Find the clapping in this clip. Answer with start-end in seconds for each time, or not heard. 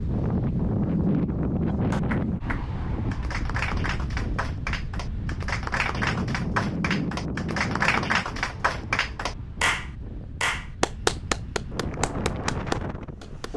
1.9-13.5.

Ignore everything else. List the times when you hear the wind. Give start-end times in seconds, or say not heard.
0.0-13.5.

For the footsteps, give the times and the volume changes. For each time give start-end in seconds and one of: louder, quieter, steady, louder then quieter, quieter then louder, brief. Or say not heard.
not heard.